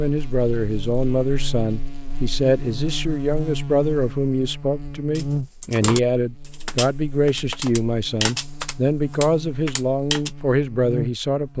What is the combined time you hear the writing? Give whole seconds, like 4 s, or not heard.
not heard.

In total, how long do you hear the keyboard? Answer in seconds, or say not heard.
5 s.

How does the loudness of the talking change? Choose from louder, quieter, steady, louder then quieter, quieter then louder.
steady.